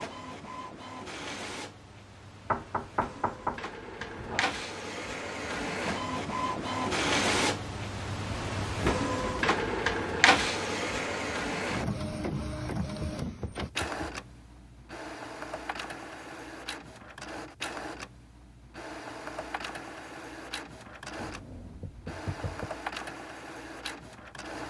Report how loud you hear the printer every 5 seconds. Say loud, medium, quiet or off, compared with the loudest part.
medium, loud, loud, medium, medium.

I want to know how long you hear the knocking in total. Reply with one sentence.
The knocking can be heard for 5 seconds in total.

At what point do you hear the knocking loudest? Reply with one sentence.
The loudest moment of the knocking is at 3 seconds.